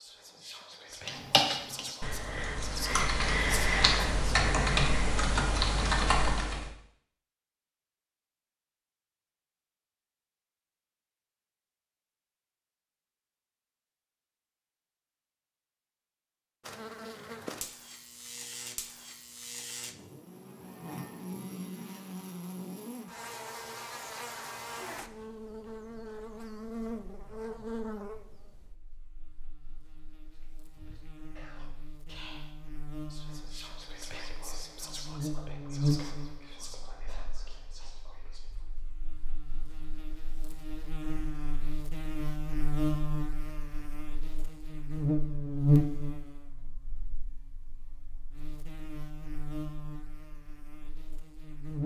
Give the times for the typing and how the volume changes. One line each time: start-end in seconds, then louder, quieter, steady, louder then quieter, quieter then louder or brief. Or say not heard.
1.1-6.7 louder.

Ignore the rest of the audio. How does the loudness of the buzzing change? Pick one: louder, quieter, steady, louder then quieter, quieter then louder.
louder.